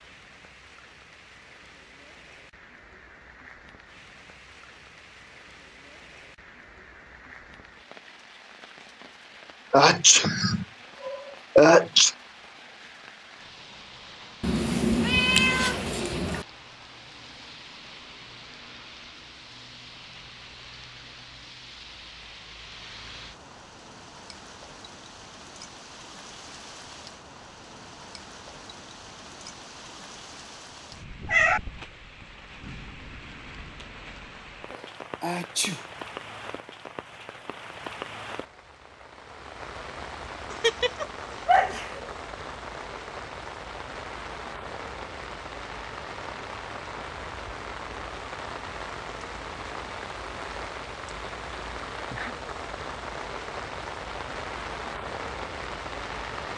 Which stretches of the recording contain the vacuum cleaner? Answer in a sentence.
You can't hear the vacuum cleaner here.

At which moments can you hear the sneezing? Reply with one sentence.
The sneezing can be heard from 9.7 to 12.1 s, from 35.2 to 35.9 s and from 40.5 to 42.1 s.